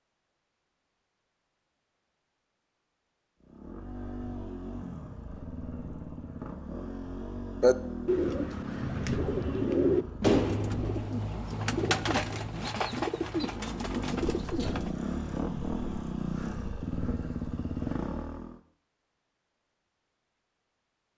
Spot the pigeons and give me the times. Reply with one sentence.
You can hear the pigeons from 7.6 to 14.9 s.